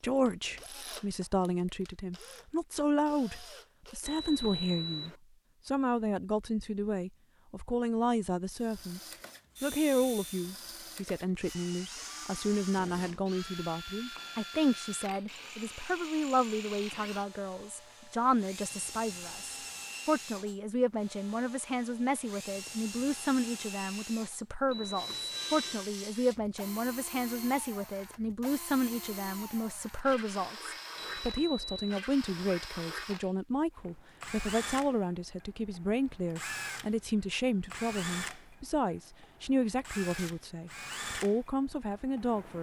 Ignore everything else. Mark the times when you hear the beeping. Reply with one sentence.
You can hear the beeping from 4.0 to 5.2 s, from 24.6 to 25.9 s and from 30.9 to 32.0 s.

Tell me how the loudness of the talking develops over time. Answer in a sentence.
The volume of the talking stays about the same.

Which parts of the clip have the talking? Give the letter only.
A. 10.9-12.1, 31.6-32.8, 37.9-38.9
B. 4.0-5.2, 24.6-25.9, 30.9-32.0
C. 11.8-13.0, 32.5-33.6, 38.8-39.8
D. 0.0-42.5
D.